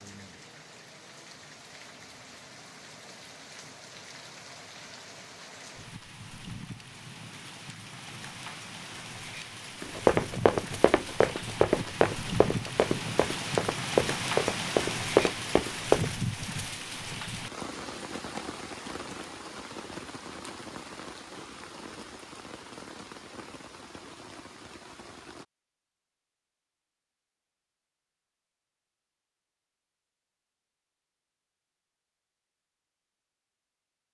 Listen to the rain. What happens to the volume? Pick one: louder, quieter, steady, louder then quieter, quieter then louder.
louder then quieter.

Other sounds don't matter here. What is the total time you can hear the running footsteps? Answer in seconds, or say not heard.
6 s.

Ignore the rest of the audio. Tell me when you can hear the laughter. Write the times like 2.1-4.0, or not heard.
not heard.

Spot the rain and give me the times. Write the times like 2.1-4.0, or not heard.
0.0-25.4.